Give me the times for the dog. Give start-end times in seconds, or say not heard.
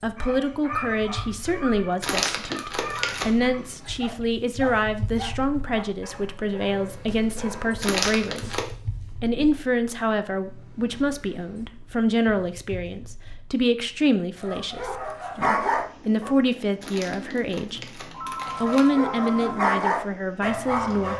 0.1-8.7, 14.3-16.4, 18.4-21.1.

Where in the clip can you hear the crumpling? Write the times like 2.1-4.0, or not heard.
2.0-3.3, 7.8-8.7, 16.8-18.8.